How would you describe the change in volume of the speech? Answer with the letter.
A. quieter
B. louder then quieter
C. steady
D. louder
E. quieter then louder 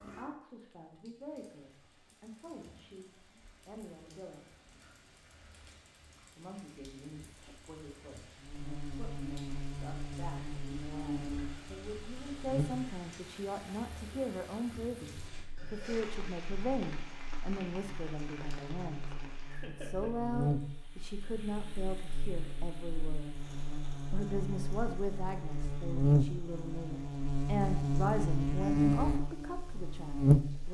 D.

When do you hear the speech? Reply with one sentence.
The speech can be heard from 0.0 to 4.5 s, from 6.3 to 23.4 s and from 24.1 to 30.6 s.